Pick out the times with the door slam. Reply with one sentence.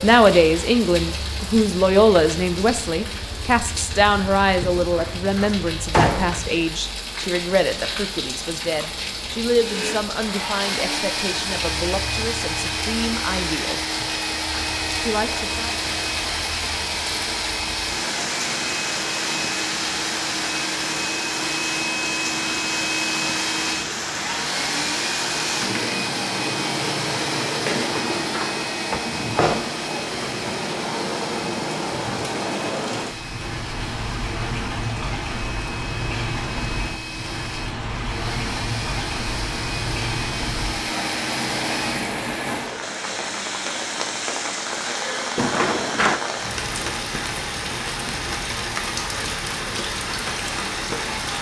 The door slam can be heard from 4.8 to 6.5 s, from 27.8 to 29.0 s and from 45.4 to 46.2 s.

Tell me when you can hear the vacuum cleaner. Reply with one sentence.
You can hear the vacuum cleaner from 9.6 to 42.1 s.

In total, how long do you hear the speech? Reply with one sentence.
You can hear the speech for 15 seconds altogether.